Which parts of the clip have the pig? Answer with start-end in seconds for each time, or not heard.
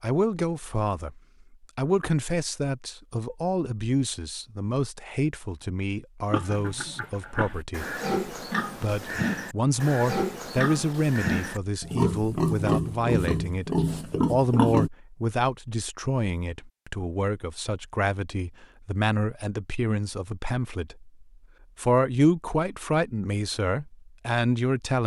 6.3-14.9.